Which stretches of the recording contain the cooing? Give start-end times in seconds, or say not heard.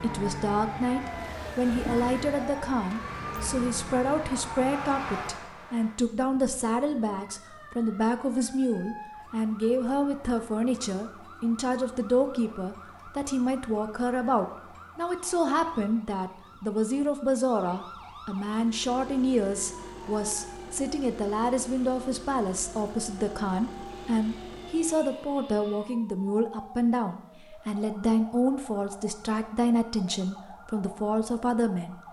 not heard.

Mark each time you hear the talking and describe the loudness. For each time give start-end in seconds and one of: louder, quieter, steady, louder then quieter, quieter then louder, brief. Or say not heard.
0.0-32.0 steady.